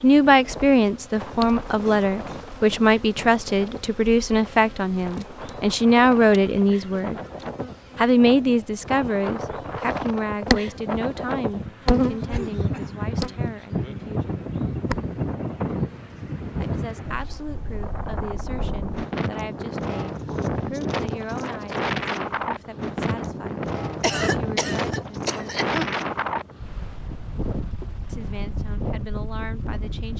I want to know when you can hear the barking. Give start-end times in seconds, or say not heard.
not heard.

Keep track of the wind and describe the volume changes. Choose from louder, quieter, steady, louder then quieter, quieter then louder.
louder.